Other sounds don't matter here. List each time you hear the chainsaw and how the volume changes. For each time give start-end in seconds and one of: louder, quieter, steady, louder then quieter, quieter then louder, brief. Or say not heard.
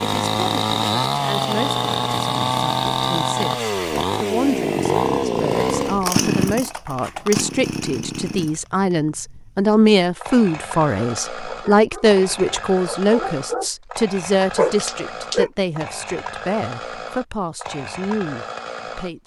0.0-19.1 quieter.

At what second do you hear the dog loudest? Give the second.
15 s.